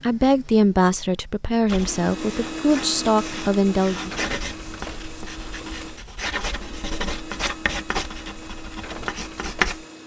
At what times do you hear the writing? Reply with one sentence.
You can hear the writing from 1.6 to 9.8 s.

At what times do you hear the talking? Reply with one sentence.
You can hear the talking from 0.0 to 4.2 s.